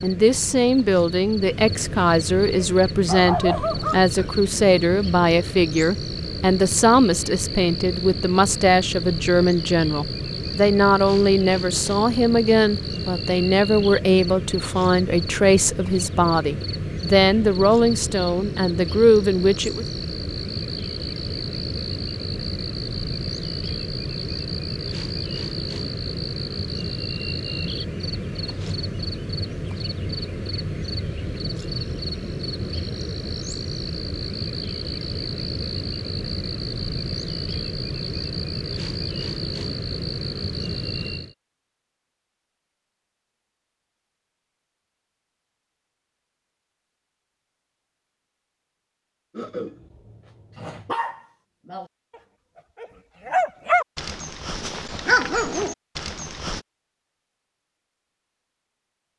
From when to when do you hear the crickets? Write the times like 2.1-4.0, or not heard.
0.0-41.4.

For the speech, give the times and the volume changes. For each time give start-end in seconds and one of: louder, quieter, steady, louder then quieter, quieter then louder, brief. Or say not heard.
0.0-19.9 steady.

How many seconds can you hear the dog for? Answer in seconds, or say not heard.
9 s.